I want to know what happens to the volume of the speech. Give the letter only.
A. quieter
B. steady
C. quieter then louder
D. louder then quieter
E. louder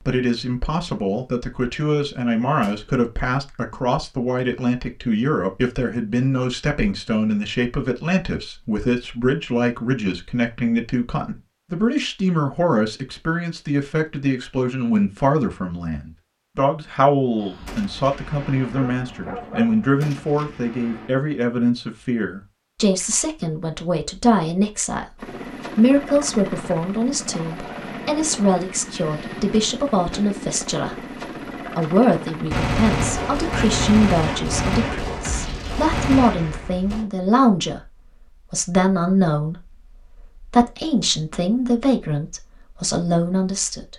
B.